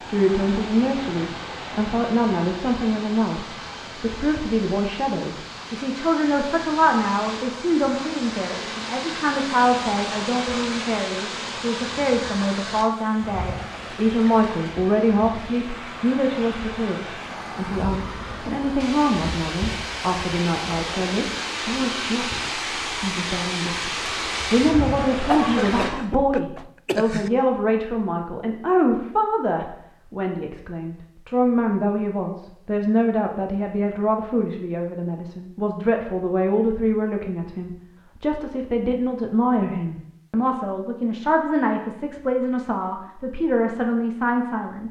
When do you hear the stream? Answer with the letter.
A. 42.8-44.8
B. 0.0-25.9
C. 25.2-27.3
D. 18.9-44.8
B.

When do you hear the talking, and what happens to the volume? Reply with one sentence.
The talking can be heard from 0.1 to 44.8 s, at a steady volume.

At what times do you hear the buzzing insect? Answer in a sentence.
You can't hear the buzzing insect here.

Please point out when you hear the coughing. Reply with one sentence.
You can hear the coughing from 25.2 to 27.3 s.